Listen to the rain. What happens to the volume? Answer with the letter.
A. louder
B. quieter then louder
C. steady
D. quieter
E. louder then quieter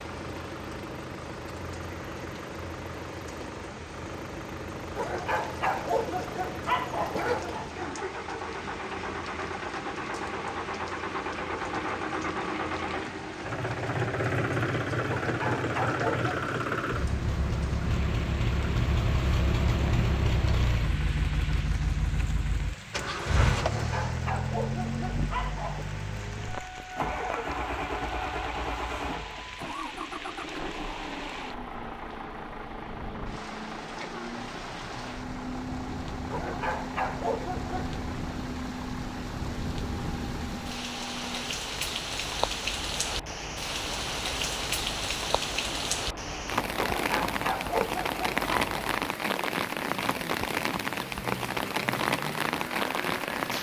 A.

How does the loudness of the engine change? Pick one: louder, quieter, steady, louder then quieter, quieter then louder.
louder then quieter.